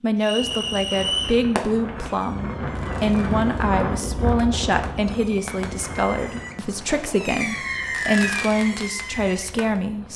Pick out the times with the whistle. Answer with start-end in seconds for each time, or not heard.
0.2-1.4, 7.4-8.4.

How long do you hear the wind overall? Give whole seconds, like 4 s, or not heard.
10 s.